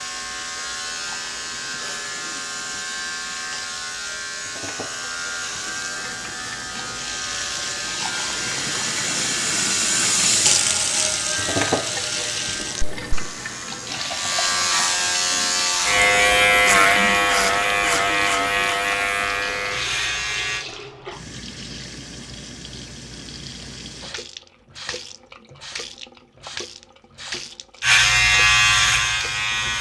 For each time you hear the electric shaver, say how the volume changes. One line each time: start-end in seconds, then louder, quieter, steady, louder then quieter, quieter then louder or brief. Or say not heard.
0.0-20.6 louder
27.8-29.7 brief.